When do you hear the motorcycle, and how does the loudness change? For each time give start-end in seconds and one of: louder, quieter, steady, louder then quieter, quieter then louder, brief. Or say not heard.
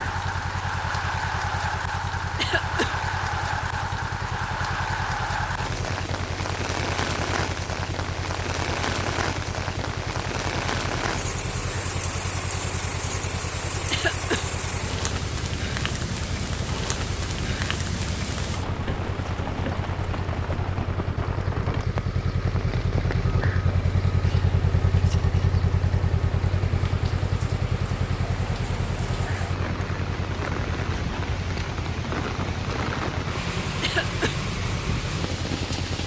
0.0-36.0 louder then quieter.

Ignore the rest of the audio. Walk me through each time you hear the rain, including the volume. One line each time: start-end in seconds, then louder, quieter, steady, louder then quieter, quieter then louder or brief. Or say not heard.
0.0-36.0 quieter then louder.